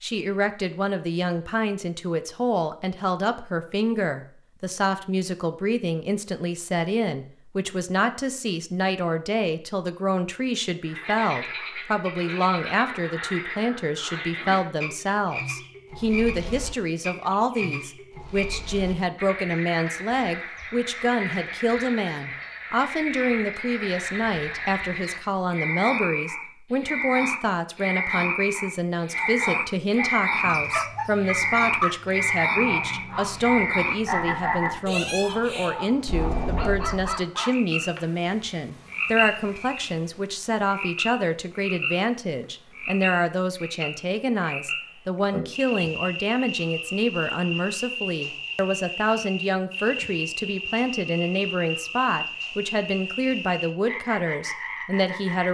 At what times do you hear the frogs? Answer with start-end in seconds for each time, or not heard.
10.8-55.4.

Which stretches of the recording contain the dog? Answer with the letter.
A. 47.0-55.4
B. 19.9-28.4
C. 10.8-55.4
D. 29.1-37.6
D.